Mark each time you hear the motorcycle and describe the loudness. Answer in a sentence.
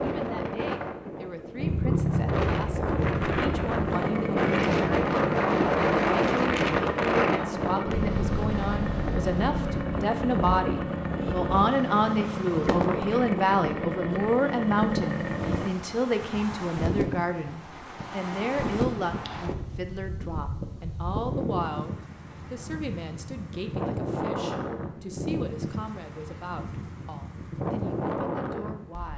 The motorcycle can be heard from 1.6 to 15.8 s, at a steady volume.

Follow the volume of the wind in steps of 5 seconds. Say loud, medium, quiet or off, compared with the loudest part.
loud, loud, medium, medium, medium, medium.